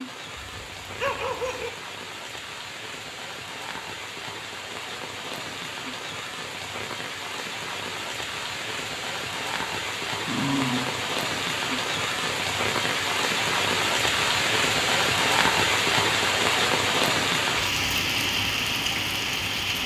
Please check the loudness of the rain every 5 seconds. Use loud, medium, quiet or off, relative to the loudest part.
quiet, medium, loud, loud.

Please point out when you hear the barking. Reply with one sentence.
You can hear the barking from 0.3 to 1.7 s and from 10.2 to 11.1 s.